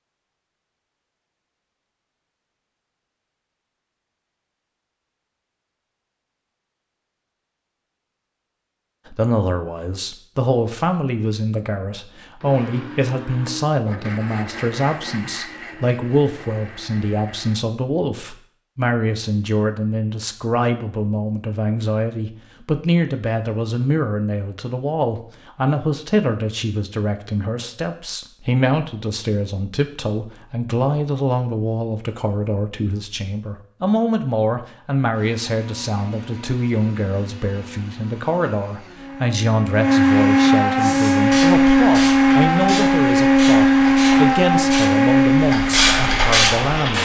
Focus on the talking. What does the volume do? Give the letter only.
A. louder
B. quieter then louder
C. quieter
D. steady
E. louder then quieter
D.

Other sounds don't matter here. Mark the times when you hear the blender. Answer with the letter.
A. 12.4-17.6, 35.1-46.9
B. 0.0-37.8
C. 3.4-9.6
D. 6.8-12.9
A.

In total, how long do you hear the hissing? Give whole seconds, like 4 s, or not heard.
6 s.